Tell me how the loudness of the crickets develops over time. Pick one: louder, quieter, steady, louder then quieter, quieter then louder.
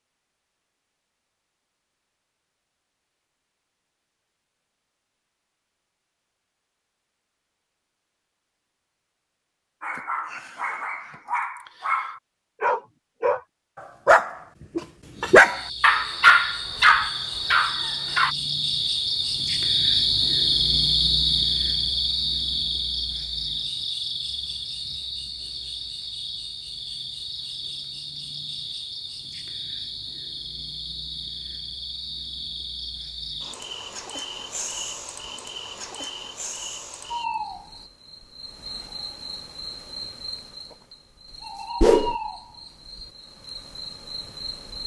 quieter.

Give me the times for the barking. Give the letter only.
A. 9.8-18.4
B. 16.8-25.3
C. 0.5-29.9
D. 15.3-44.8
A.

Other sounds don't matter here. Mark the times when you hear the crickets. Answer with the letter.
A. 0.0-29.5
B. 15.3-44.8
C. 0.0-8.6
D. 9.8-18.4
B.